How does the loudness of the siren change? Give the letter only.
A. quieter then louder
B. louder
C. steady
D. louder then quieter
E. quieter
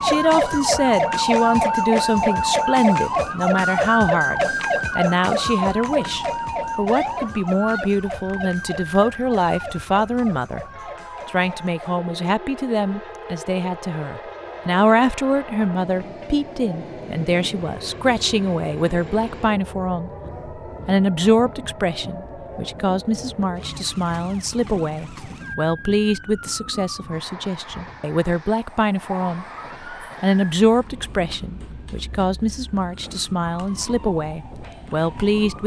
E.